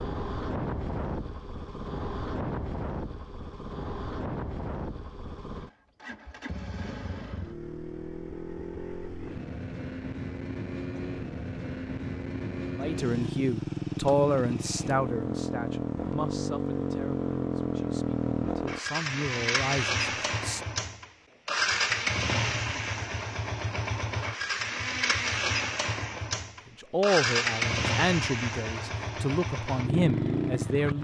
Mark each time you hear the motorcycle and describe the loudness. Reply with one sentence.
The motorcycle can be heard from 0.0 to 31.0 s, getting louder.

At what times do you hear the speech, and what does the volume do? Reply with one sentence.
The speech can be heard from 12.8 to 20.6 s, getting quieter then louder; and from 26.6 to 31.0 s, getting quieter then louder.